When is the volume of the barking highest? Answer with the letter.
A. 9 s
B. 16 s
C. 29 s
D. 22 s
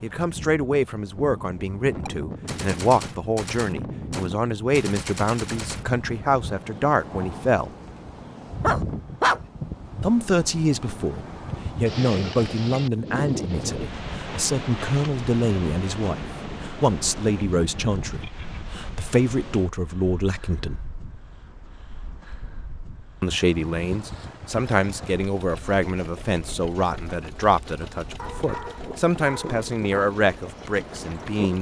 A.